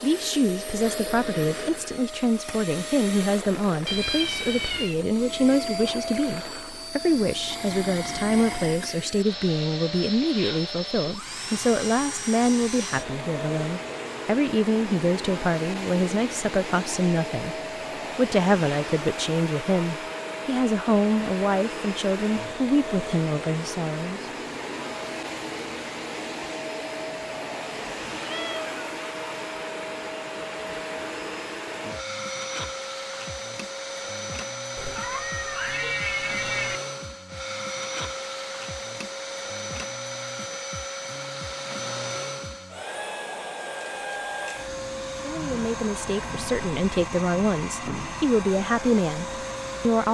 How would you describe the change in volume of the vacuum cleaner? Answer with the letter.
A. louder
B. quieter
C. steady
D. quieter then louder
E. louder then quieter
C.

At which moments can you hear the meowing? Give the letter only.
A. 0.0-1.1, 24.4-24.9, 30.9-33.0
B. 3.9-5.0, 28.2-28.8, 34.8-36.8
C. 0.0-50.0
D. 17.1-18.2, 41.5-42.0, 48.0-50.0
B.